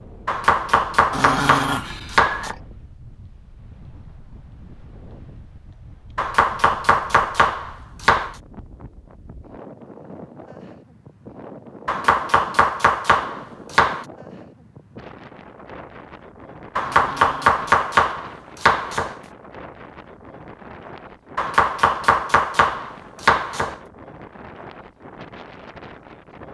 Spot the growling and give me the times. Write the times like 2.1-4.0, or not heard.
1.1-2.6, 16.8-17.6.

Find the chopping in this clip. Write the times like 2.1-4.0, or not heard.
0.2-2.5, 6.2-8.3, 11.8-14.1, 16.8-19.1, 21.4-23.8.